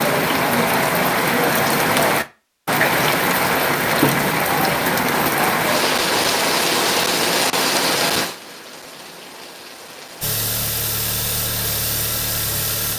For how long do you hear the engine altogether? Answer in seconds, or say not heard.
3 s.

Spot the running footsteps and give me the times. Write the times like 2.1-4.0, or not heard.
not heard.